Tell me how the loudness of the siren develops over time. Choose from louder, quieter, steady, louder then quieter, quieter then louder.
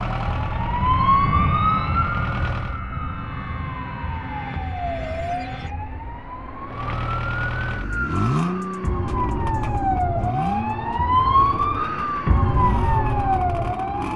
quieter then louder.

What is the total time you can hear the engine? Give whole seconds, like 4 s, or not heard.
10 s.